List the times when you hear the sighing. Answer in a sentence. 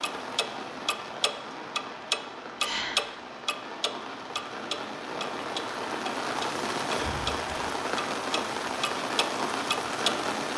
The sighing can be heard from 2.5 to 3.1 s and from 6.9 to 7.7 s.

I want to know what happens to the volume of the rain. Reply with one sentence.
The volume of the rain goes up.